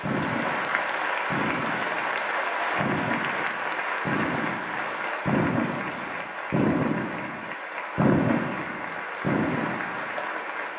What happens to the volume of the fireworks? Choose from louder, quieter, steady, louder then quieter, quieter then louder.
louder.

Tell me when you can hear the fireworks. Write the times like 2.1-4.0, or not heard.
0.0-10.2.